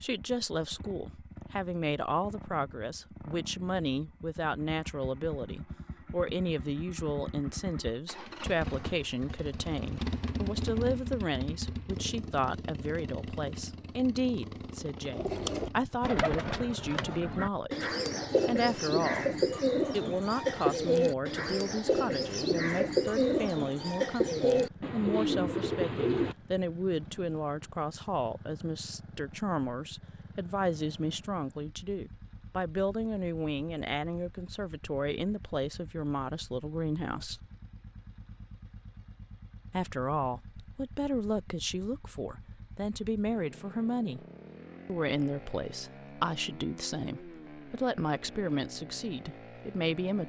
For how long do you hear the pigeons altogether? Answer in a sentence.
You can hear the pigeons for 11 seconds altogether.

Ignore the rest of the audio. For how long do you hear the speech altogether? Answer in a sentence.
The speech can be heard for 47 seconds in total.